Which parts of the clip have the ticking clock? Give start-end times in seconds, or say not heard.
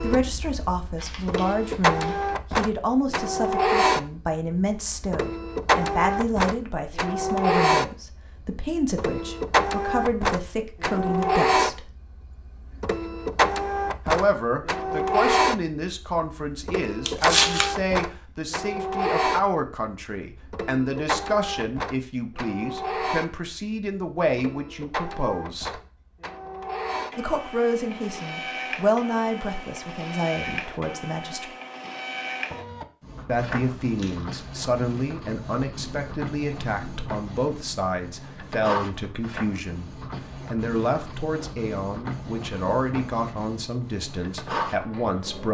not heard.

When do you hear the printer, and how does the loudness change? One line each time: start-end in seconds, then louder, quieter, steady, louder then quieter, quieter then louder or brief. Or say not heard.
0.0-45.4 quieter.